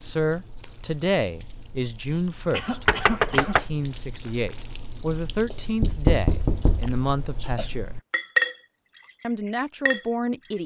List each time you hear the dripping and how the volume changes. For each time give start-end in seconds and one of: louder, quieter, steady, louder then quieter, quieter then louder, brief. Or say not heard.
0.0-10.6 louder.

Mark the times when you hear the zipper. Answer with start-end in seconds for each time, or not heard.
not heard.